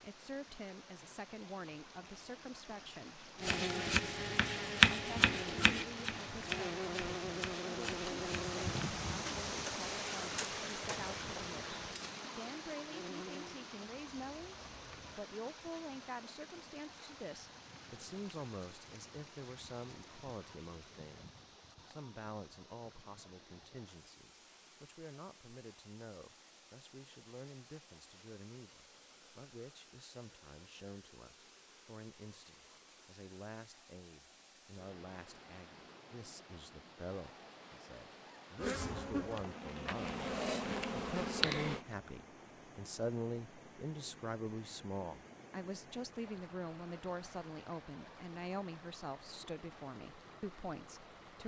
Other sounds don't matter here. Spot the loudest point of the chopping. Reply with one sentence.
The loudest moment of the chopping is at 5 seconds.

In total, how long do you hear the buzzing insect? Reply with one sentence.
The buzzing insect can be heard for 15 seconds in total.